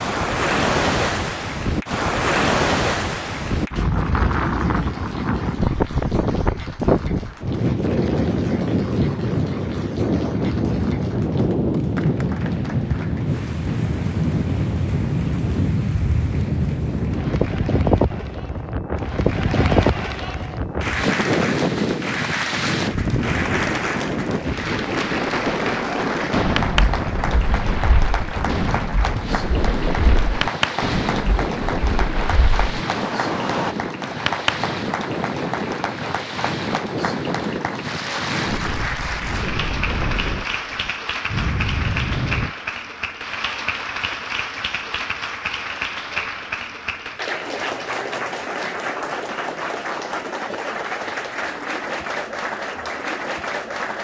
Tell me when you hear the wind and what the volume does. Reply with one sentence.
The wind can be heard from 0.0 to 42.5 s, getting quieter.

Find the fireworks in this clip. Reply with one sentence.
You can hear the fireworks from 26.3 to 33.8 s.